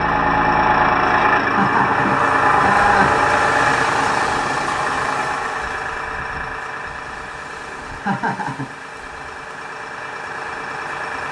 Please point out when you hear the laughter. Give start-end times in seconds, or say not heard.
1.4-3.1, 7.8-8.7.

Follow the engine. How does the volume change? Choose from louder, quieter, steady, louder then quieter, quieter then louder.
quieter.